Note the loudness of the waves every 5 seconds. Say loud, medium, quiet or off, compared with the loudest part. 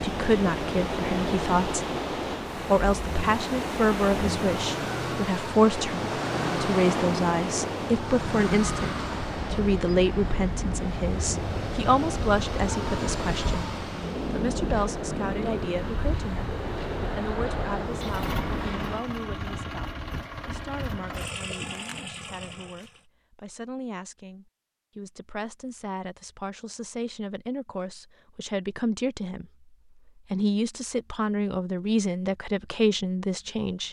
loud, loud, loud, loud, off, off, off.